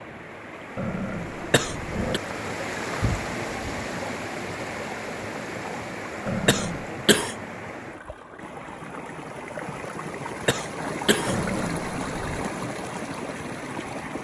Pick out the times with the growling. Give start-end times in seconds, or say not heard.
0.8-2.2, 6.2-6.9, 11.2-12.4.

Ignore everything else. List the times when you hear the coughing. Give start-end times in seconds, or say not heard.
1.5-2.2, 6.5-7.3, 10.4-11.4.